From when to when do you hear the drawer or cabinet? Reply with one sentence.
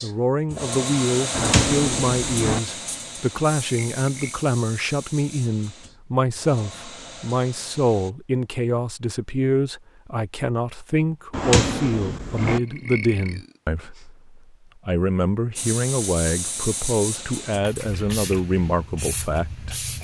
The drawer or cabinet can be heard from 1.3 to 2.6 s and from 11.3 to 12.6 s.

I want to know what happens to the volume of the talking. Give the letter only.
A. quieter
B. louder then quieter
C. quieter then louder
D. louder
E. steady
E.